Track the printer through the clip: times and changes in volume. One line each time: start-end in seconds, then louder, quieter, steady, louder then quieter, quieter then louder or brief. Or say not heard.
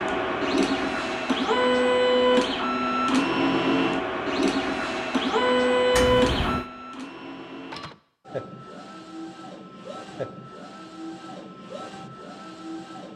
0.0-13.1 quieter.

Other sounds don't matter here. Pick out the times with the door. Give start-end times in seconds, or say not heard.
5.9-6.7.